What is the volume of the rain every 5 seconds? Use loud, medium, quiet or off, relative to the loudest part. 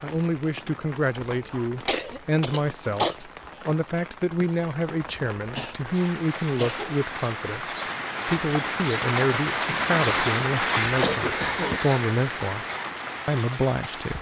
quiet, loud, loud.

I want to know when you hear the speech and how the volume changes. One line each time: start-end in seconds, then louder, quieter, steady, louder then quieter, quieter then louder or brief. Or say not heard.
0.0-12.7 steady
13.2-14.1 brief.